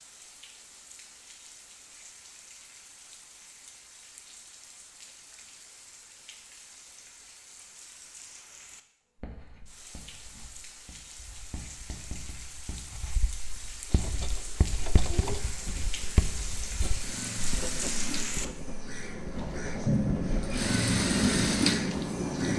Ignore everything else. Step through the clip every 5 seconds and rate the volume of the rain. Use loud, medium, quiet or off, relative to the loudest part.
quiet, quiet, quiet, medium, loud.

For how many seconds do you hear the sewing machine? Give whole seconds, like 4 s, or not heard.
9 s.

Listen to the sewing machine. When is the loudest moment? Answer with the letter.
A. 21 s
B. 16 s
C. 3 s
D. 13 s
A.